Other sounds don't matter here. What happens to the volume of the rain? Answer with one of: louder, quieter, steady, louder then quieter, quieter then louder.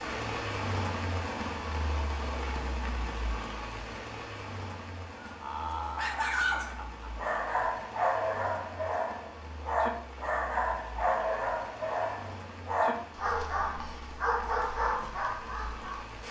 quieter.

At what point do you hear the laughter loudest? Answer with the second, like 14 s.
6 s.